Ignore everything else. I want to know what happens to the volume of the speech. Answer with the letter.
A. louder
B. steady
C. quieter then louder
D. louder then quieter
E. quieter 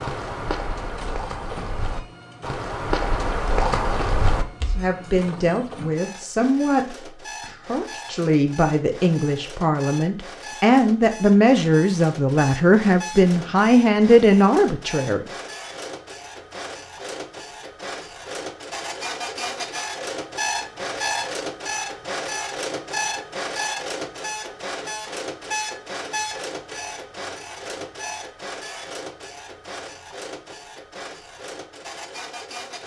A.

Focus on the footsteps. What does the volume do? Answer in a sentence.
The volume of the footsteps goes up.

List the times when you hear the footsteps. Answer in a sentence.
You can hear the footsteps from 0.0 to 4.9 s.